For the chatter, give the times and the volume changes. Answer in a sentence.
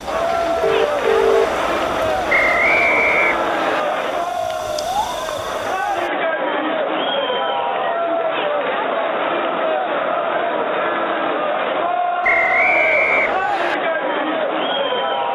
The chatter can be heard from 0.0 to 15.2 s, at a steady volume.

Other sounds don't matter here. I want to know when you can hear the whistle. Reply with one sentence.
The whistle can be heard from 2.2 to 3.8 s and from 12.2 to 13.8 s.